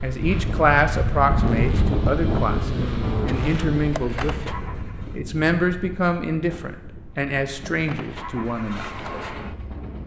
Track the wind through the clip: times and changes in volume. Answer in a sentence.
The wind can be heard from 0.0 to 10.0 s, getting quieter.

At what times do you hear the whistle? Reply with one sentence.
You can't hear the whistle here.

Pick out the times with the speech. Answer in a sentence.
The speech can be heard from 0.0 to 8.8 s.